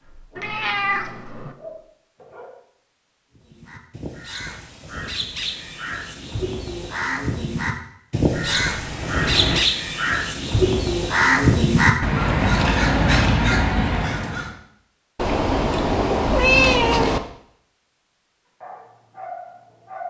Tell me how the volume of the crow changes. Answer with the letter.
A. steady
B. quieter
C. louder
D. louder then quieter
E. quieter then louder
C.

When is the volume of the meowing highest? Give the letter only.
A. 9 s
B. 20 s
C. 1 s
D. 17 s
D.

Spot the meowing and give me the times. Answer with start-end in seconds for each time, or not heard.
0.3-1.6, 8.3-9.7, 15.2-17.2.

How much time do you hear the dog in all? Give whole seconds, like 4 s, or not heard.
4 s.